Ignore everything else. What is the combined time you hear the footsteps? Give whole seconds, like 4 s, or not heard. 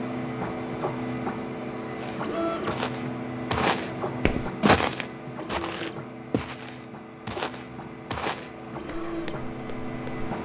8 s.